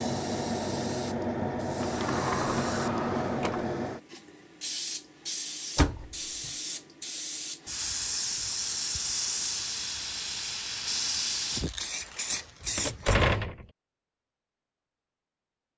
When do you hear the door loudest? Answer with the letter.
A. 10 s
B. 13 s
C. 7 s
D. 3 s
B.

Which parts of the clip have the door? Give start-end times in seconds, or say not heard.
1.8-3.6, 5.8-6.5, 12.8-13.7.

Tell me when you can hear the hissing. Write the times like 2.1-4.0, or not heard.
0.0-13.2.